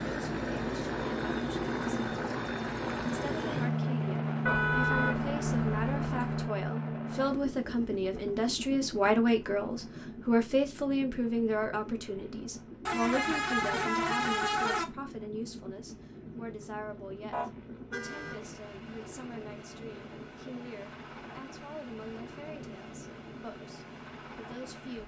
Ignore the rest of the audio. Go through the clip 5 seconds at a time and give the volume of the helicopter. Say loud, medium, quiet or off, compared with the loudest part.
loud, loud, quiet, quiet, quiet.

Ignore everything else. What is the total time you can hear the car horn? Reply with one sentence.
The car horn can be heard for 5 seconds in total.